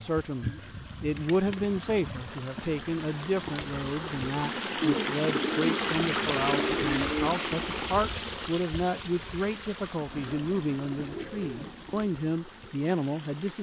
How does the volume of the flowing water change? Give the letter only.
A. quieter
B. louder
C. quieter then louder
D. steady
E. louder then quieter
E.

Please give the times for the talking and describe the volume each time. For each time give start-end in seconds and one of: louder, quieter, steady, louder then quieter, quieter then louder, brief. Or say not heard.
0.0-13.5 steady.